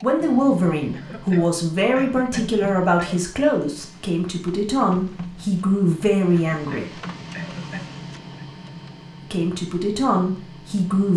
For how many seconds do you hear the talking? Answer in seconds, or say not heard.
9 s.